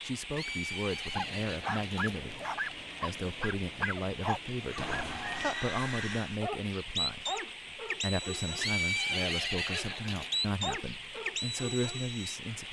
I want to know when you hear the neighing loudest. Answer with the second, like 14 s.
9 s.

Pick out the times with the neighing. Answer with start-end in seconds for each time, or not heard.
0.3-2.2, 4.8-6.4, 8.6-10.4.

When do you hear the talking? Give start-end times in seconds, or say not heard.
0.0-2.4, 3.0-7.4, 8.0-12.6.